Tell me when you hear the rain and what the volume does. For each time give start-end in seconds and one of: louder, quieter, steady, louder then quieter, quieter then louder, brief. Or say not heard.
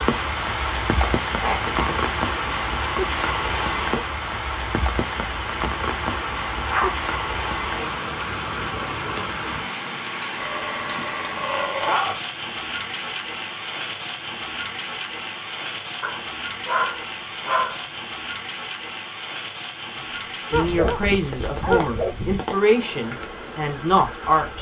0.0-24.5 quieter.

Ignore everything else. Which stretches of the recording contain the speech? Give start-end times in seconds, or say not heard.
20.5-24.5.